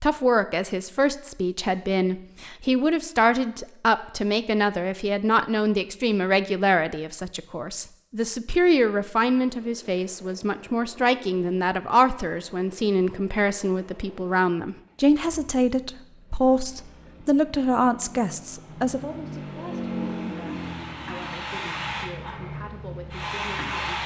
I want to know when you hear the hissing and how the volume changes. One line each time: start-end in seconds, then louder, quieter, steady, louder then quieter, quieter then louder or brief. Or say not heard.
18.6-24.0 louder.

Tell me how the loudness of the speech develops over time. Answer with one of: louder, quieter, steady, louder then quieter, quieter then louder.
quieter.